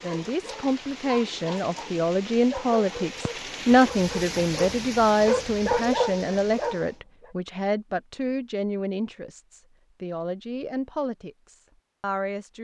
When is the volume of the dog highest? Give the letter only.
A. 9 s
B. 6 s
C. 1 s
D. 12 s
B.